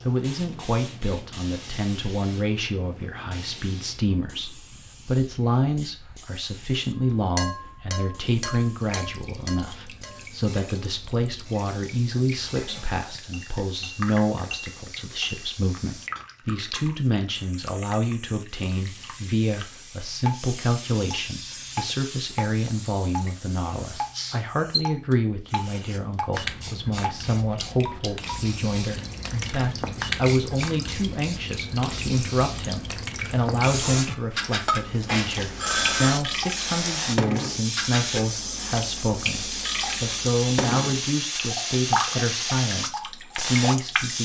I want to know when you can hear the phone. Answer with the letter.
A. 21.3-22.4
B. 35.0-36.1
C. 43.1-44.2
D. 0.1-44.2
B.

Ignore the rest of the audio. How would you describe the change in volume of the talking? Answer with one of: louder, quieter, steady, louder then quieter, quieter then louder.
steady.